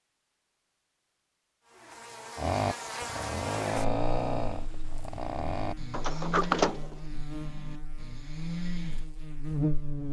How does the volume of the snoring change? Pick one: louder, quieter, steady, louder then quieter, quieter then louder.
quieter.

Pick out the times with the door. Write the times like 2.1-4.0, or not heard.
5.9-7.0.